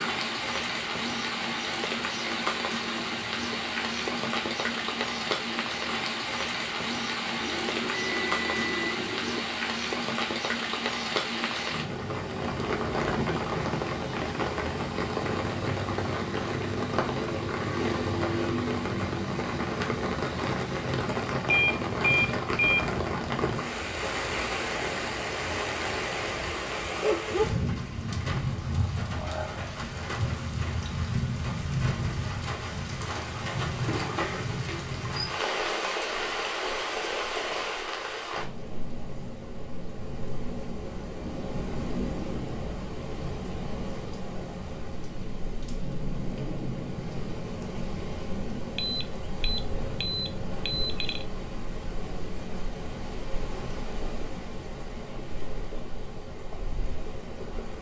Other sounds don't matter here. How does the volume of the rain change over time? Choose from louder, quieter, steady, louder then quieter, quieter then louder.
quieter.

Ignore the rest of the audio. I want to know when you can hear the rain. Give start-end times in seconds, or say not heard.
0.0-57.7.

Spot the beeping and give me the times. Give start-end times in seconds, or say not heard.
7.4-9.4, 21.4-22.9, 48.8-51.2.